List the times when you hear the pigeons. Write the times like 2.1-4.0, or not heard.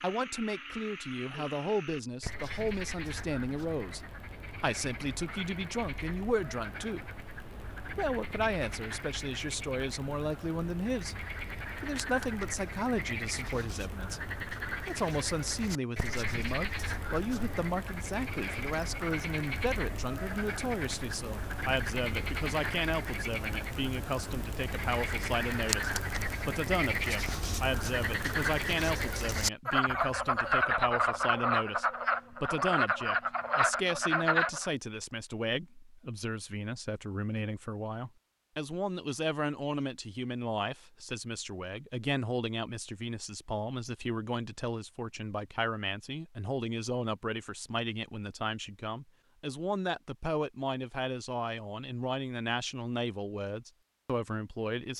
not heard.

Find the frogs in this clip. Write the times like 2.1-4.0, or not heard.
0.0-34.7.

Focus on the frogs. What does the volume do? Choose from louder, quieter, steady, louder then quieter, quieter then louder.
louder.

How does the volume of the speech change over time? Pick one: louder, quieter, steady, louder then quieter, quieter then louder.
steady.